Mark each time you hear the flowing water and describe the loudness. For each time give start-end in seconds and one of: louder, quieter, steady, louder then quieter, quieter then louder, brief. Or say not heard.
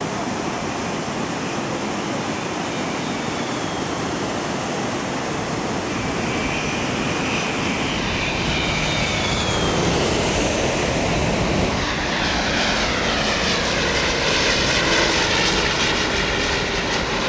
0.0-17.2 steady.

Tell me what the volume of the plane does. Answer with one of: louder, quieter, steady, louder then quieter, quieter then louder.
louder.